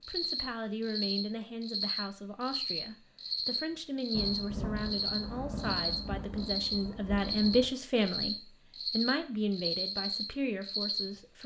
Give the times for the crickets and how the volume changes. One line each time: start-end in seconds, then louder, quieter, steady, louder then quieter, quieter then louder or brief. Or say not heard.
0.0-11.4 steady.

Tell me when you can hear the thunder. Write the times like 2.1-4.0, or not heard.
4.1-7.7.